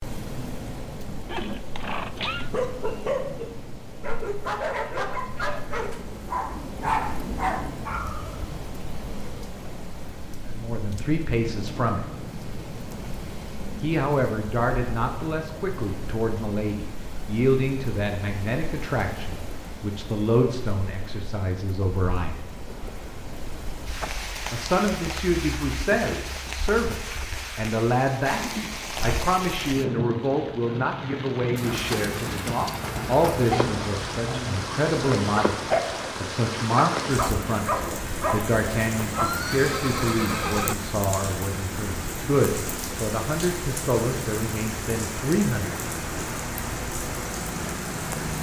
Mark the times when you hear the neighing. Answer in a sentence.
You can hear the neighing from 1.2 to 2.5 s and from 39.1 to 40.8 s.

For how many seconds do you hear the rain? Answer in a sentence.
You can hear the rain for 48 seconds altogether.